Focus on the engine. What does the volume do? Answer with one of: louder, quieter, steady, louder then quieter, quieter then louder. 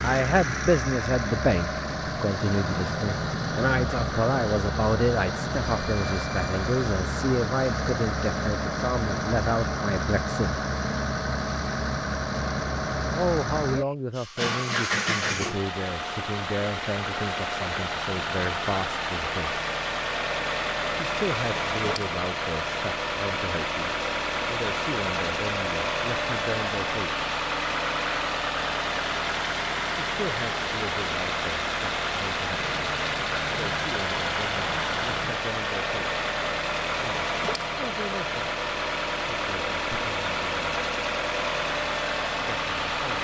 steady.